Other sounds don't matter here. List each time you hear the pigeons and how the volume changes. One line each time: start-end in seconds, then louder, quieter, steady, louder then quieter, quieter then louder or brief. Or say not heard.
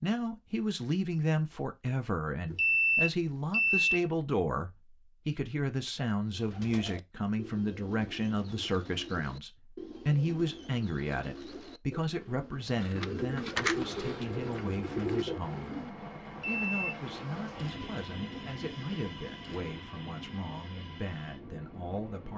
6.3-15.9 louder.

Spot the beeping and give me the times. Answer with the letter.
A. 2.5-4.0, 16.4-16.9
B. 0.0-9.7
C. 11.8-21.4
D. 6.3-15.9
A.